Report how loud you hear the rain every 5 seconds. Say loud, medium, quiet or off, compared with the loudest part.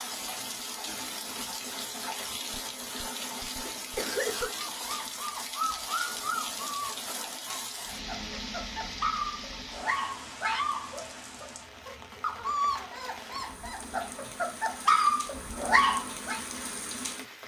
loud, loud, medium, loud.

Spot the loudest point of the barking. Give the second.
15 s.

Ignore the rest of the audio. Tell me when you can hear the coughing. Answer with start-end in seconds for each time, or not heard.
2.5-4.5.